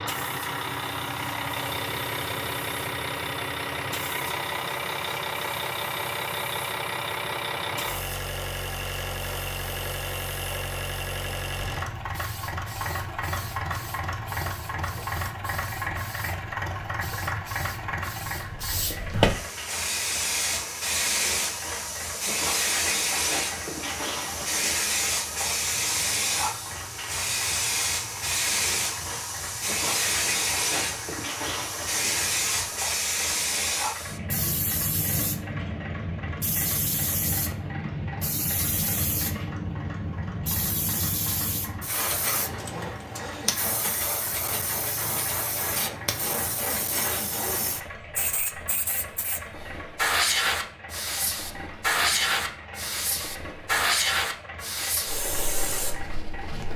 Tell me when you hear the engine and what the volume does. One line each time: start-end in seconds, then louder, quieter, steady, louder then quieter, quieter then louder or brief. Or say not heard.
0.0-56.7 quieter.